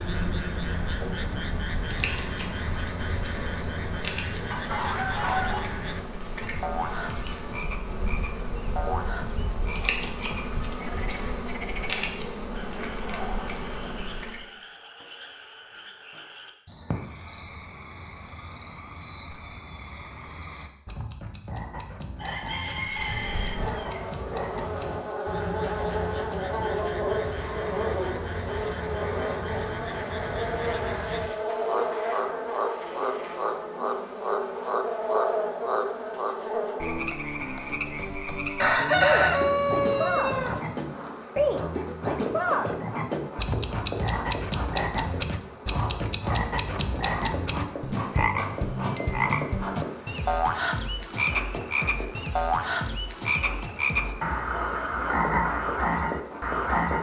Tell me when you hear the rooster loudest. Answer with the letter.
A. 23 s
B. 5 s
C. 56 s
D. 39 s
D.